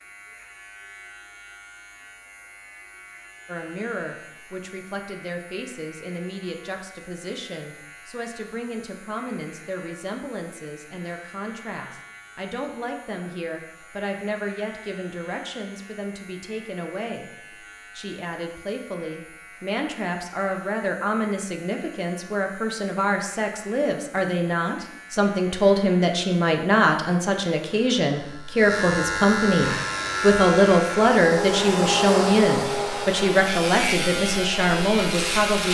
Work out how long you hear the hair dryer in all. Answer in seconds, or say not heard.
6 s.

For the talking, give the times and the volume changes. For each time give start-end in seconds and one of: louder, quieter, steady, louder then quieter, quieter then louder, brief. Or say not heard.
3.5-17.3 steady
17.9-35.6 louder.